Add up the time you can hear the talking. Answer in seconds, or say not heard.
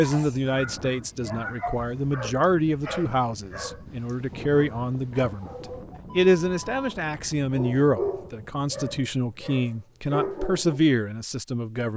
11 s.